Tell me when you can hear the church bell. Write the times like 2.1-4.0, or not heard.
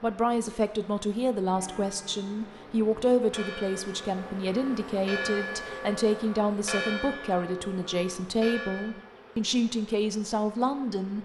1.5-8.9.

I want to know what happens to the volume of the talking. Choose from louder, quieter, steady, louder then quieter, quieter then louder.
steady.